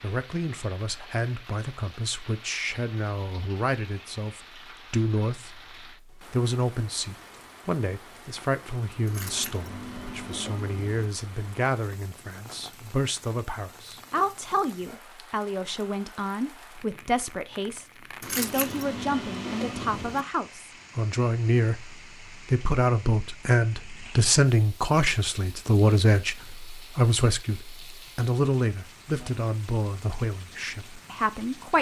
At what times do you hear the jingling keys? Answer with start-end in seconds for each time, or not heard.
9.1-11.1, 18.2-20.2.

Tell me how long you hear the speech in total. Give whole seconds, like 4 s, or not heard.
32 s.